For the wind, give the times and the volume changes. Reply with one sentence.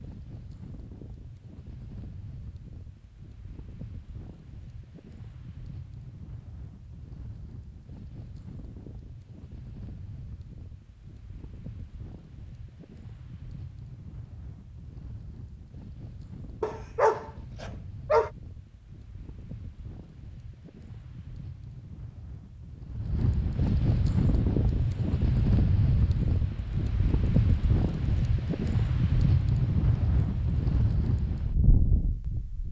You can hear the wind from 0.0 to 32.6 s, getting louder.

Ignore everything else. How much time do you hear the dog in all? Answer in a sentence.
You can hear the dog for 2 seconds altogether.